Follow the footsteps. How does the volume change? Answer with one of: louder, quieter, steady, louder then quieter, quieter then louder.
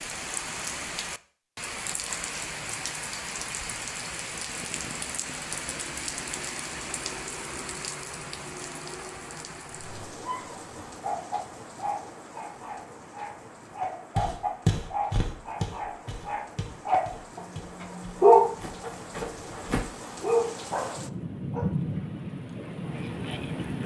quieter.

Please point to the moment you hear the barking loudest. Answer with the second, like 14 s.
18 s.